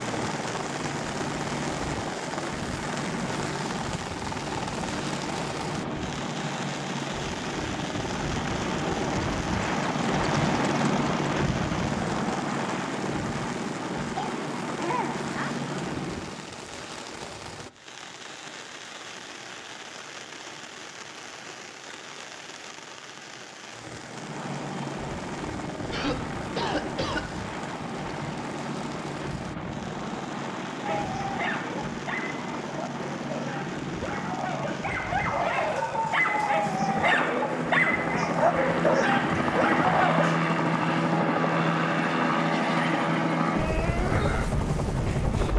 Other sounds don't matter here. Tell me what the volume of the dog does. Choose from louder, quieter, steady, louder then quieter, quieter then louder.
louder.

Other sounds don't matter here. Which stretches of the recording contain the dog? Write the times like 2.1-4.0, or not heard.
30.8-40.4.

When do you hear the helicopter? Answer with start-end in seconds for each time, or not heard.
0.0-16.6, 23.9-45.5.